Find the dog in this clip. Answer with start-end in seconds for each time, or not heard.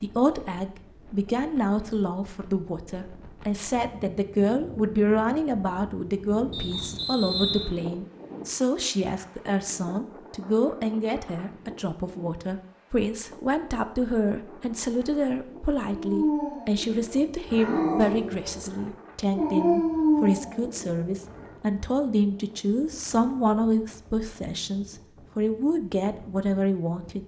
15.8-21.5.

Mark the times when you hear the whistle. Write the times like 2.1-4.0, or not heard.
6.5-7.8.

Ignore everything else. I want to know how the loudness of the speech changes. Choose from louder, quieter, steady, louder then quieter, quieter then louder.
steady.